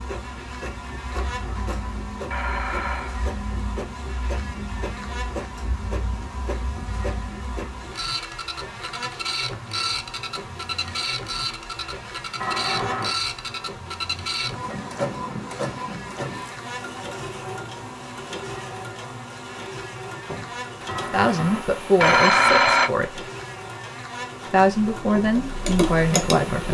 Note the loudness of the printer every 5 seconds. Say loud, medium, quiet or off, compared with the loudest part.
medium, loud, loud, loud, medium, medium.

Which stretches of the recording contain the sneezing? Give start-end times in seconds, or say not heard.
not heard.